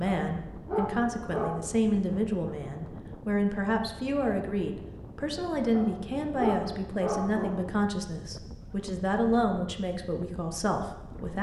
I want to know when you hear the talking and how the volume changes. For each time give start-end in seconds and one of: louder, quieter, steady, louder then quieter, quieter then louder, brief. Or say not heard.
0.0-11.3 steady.